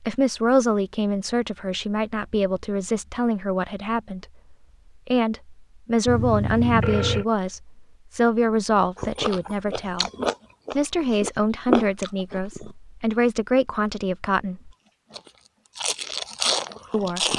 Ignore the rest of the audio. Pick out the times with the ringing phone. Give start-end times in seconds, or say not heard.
6.0-7.2.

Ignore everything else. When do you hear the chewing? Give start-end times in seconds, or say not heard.
8.9-12.7, 15.1-17.3.